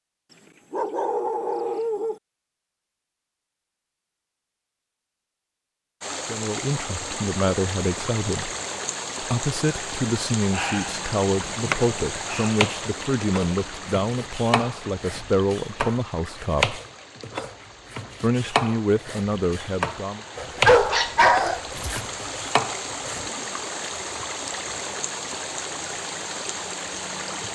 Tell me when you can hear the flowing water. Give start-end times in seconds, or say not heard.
6.0-27.5.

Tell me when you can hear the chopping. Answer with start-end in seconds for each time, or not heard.
11.3-23.2.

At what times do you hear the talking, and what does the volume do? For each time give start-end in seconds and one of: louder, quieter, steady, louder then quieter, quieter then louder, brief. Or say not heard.
6.2-8.5 brief
9.2-16.8 steady
18.2-20.2 brief.